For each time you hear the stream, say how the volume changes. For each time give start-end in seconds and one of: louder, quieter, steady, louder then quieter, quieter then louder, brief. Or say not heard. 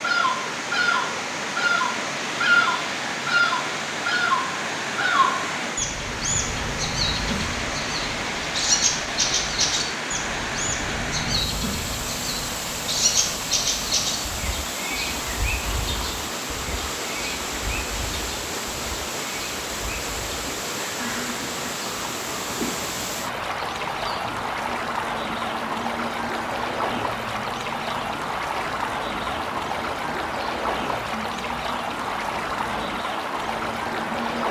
0.0-34.4 steady.